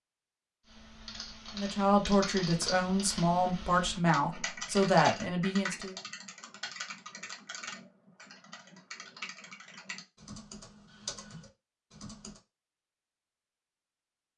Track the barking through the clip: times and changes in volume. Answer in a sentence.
You can't hear the barking here.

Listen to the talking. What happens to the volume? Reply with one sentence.
The loudness of the talking stays about the same.